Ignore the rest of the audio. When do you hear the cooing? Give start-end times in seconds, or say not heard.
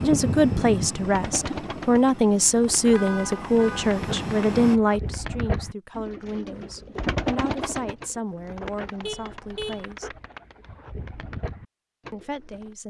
1.0-12.8.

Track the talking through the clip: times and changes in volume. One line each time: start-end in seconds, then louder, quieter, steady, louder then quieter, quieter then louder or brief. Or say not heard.
0.0-10.2 quieter
12.1-12.8 brief.